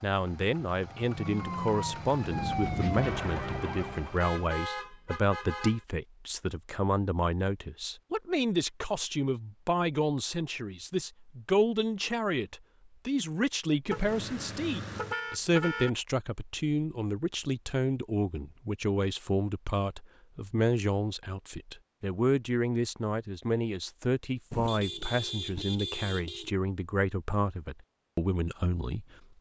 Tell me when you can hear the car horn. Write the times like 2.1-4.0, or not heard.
4.2-5.8, 13.9-15.9, 24.5-26.6.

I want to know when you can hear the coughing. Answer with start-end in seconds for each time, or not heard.
not heard.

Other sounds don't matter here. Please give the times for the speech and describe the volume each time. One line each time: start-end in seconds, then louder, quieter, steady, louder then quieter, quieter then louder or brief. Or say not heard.
0.0-29.3 steady.